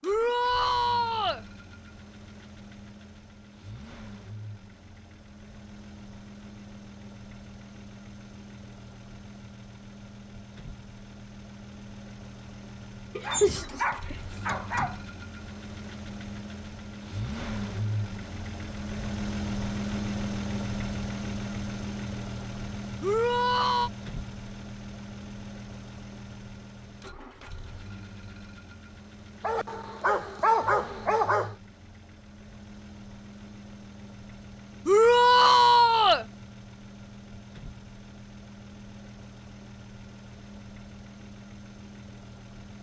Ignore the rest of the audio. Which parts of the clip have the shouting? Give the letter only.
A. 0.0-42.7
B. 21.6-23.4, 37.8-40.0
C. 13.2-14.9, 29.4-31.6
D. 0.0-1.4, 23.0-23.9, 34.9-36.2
D.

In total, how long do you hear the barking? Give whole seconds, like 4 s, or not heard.
4 s.